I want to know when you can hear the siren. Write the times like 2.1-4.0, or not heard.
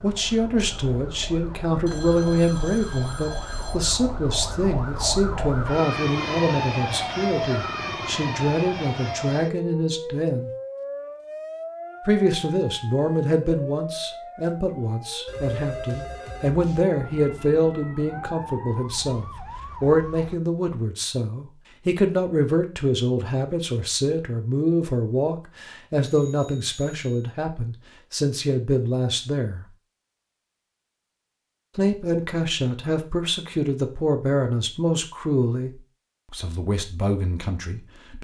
0.0-20.4.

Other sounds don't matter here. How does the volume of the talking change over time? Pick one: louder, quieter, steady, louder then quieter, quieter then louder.
steady.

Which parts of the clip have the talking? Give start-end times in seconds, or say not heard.
0.0-10.5, 12.1-29.6, 31.8-38.2.